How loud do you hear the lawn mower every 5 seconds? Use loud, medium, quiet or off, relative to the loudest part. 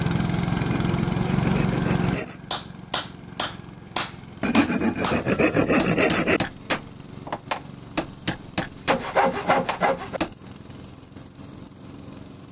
loud, quiet, quiet.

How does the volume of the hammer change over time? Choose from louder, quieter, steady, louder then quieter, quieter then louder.
steady.